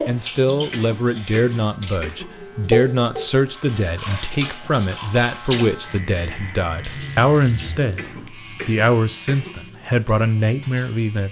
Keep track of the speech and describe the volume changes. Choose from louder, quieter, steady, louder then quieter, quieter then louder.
steady.